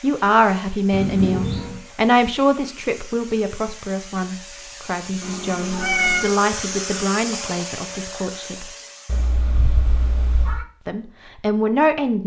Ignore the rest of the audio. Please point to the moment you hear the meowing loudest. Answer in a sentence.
The loudest moment of the meowing is at 6 seconds.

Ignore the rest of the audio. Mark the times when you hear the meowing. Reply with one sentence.
The meowing can be heard from 0.9 to 1.8 s, from 5.2 to 6.3 s and from 9.1 to 10.7 s.